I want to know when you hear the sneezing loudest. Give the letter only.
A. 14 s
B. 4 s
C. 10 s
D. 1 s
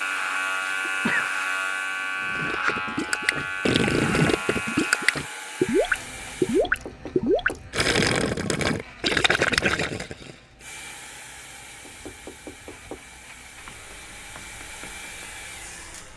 D.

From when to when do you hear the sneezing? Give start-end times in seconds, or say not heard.
0.8-1.3, 9.4-9.8.